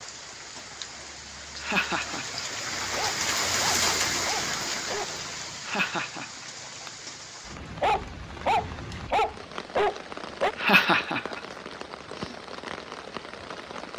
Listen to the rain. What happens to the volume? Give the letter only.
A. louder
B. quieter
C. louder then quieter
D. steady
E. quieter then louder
C.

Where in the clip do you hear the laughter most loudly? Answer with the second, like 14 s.
11 s.